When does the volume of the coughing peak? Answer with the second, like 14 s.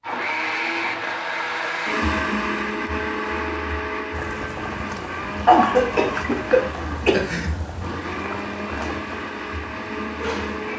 6 s.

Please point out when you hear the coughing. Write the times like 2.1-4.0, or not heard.
5.5-7.5.